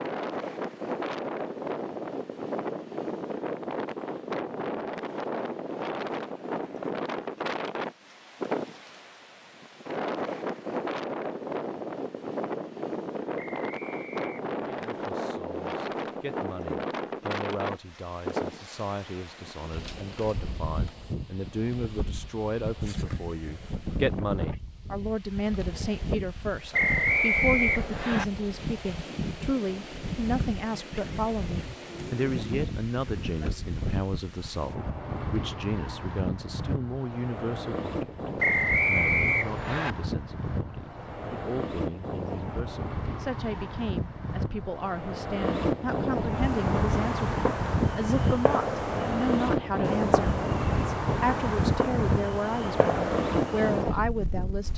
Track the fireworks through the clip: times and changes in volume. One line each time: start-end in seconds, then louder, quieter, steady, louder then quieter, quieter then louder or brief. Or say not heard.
46.2-53.9 steady.